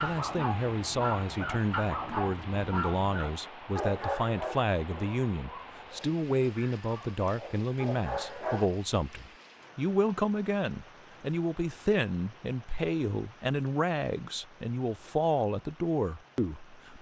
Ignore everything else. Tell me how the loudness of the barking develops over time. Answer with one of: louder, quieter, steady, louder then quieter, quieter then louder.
quieter then louder.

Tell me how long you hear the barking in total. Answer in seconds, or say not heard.
9 s.